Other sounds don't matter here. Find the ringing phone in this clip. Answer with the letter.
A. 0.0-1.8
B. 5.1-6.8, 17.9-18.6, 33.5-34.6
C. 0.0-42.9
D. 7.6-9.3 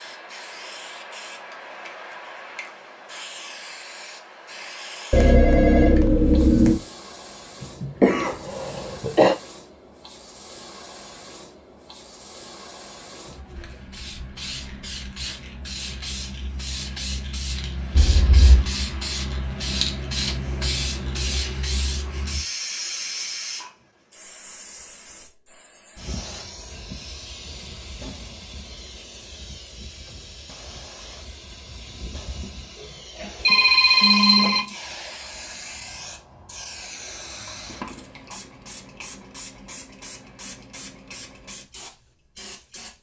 B.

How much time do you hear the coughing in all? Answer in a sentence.
The coughing can be heard for 2 seconds in total.